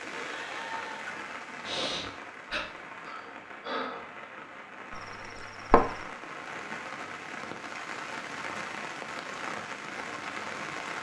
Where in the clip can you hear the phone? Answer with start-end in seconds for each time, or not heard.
4.9-6.0.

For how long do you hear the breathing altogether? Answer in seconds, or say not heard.
4 s.